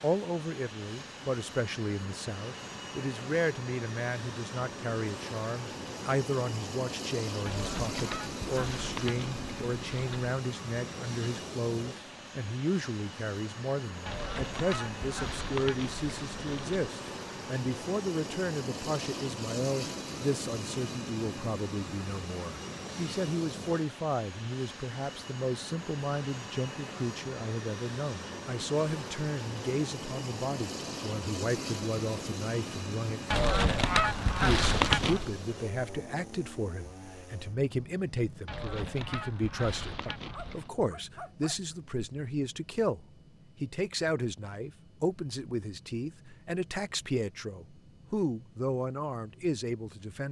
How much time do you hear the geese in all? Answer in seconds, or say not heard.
10 s.